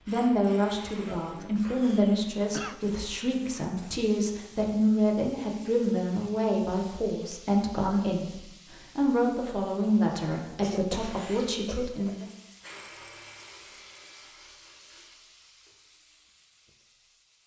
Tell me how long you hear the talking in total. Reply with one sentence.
You can hear the talking for 12 seconds altogether.